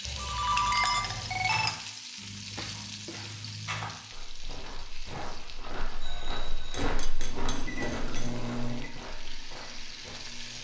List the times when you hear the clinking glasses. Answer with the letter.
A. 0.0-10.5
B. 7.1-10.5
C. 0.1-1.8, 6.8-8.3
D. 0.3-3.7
C.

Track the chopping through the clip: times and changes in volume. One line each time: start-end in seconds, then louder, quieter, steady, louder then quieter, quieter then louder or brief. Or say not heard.
not heard.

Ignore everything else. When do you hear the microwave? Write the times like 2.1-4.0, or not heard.
7.1-10.5.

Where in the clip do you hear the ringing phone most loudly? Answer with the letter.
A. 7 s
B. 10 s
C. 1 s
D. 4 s
C.